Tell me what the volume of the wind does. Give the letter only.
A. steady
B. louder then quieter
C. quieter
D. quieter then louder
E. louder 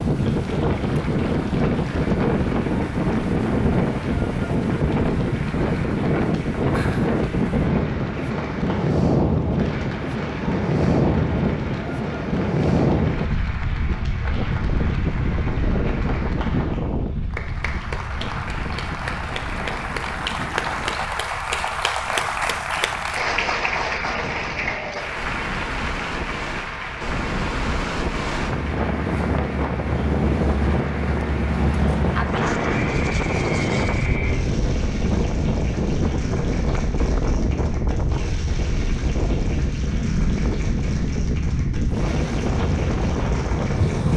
D.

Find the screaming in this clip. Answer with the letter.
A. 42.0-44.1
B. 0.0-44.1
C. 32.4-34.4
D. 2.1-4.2
C.